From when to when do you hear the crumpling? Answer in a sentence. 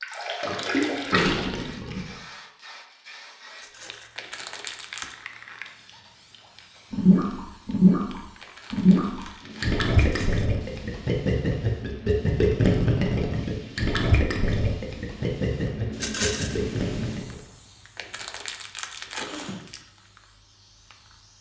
The crumpling can be heard from 4.2 to 5.2 s, from 8.4 to 9.8 s and from 17.9 to 19.9 s.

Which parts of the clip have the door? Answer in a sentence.
The door can't be heard in this clip.